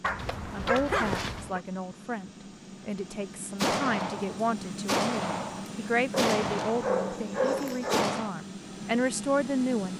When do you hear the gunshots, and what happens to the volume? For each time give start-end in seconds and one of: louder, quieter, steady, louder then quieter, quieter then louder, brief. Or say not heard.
3.5-8.3 louder then quieter.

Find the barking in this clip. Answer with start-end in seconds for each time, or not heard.
0.0-1.6, 6.2-8.1.